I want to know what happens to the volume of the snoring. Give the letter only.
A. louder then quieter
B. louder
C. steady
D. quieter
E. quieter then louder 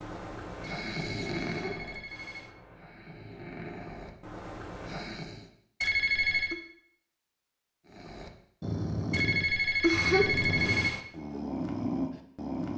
E.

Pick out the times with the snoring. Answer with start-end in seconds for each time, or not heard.
0.0-5.5, 7.8-12.7.